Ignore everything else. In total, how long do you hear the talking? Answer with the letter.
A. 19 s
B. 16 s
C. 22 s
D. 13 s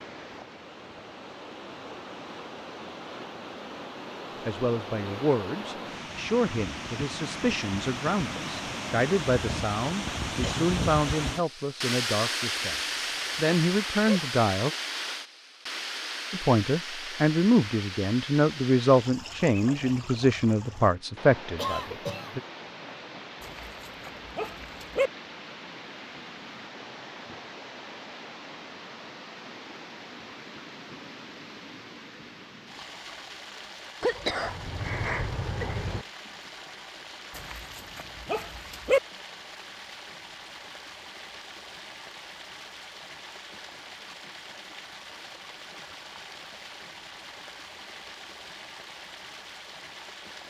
B.